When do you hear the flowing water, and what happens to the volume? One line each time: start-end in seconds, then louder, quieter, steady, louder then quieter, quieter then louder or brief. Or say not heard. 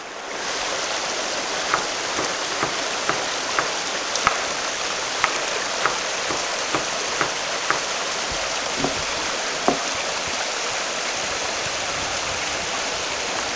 0.0-13.5 steady.